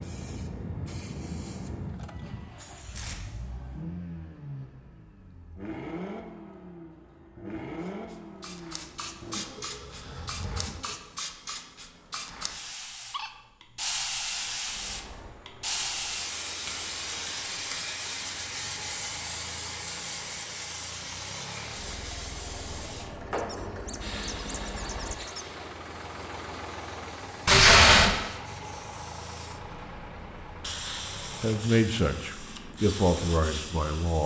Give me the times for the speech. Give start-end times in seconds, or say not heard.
31.4-34.2.